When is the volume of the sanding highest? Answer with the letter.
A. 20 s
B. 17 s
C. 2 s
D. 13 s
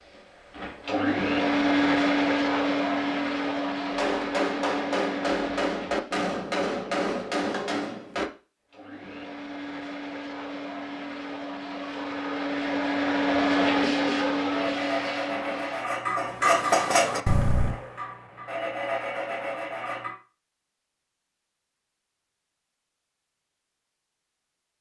B.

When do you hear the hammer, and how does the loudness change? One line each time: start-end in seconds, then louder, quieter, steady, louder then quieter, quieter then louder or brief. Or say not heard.
3.9-8.3 steady.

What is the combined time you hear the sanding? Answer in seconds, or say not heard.
6 s.